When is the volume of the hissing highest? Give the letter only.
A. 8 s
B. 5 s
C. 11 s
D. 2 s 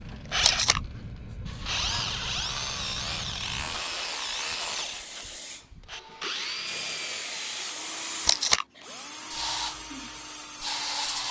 C.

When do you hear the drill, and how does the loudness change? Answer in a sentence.
The drill can be heard from 0.0 to 11.2 s, getting quieter.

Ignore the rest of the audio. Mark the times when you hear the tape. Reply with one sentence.
The tape can be heard from 0.4 to 0.8 s and from 8.2 to 8.7 s.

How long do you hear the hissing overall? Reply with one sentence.
The hissing can be heard for 11 seconds in total.